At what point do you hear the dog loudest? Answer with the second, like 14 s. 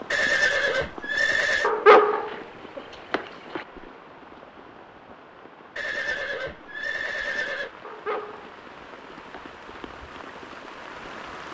2 s.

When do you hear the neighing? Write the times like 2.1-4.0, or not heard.
0.1-1.7, 5.8-7.7.